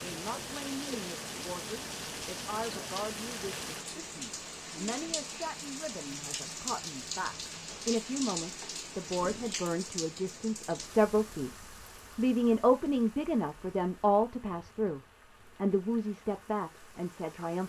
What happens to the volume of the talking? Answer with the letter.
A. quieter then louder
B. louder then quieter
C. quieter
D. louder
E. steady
B.